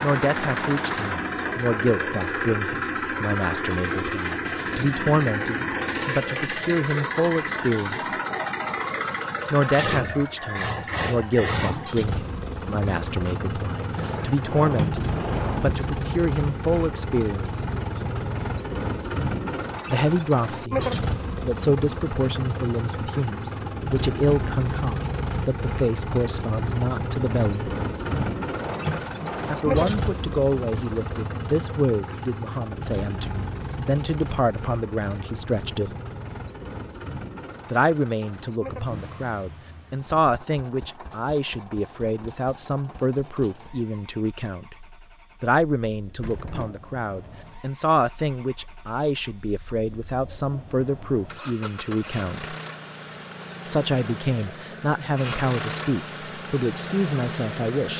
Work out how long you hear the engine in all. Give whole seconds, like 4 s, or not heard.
58 s.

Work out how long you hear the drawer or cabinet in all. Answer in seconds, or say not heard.
4 s.